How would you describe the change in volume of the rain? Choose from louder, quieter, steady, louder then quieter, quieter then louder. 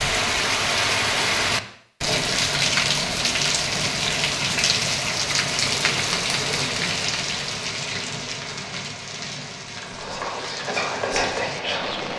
quieter.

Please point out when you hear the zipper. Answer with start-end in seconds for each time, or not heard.
not heard.